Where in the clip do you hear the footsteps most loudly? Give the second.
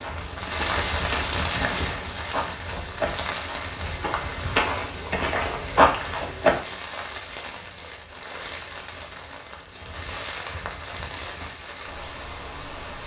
6 s.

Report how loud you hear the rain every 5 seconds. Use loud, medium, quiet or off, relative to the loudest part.
loud, medium, medium.